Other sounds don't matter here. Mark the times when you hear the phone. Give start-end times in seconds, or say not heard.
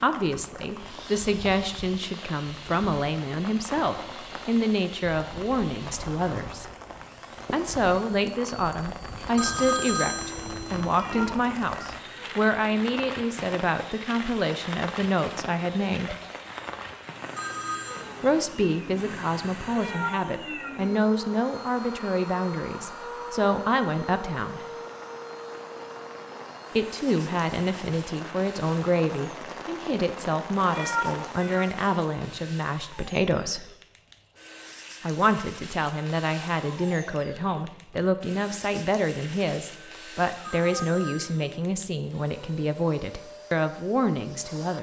9.3-11.3, 17.4-18.1, 40.4-41.7.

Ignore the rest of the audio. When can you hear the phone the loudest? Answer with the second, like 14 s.
10 s.